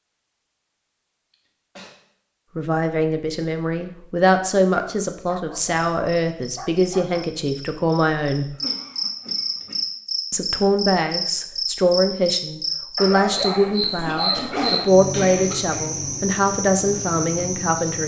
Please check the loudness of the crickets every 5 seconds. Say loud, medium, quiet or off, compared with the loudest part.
off, loud, loud, loud.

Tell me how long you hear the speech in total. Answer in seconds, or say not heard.
14 s.